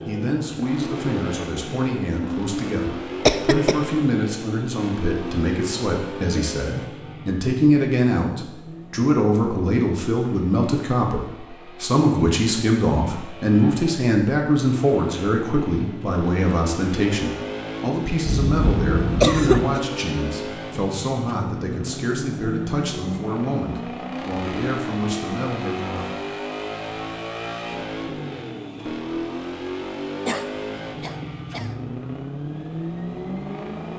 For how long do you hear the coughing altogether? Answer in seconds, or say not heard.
4 s.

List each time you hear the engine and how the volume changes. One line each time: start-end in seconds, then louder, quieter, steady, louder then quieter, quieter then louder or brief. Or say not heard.
0.0-33.9 quieter then louder.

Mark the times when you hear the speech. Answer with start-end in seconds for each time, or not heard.
0.1-26.1.